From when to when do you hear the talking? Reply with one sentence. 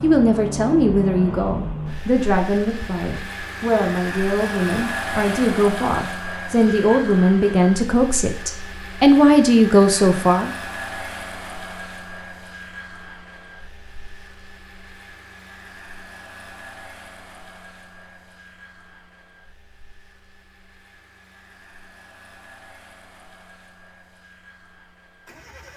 The talking can be heard from 0.0 to 10.5 s.